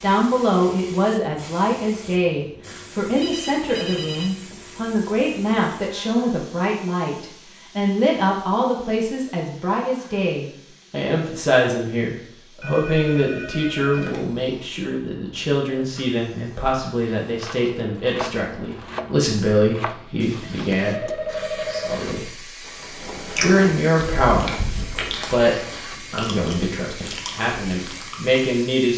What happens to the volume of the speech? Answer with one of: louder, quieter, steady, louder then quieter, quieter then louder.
steady.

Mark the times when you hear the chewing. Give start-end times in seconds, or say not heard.
22.6-28.4.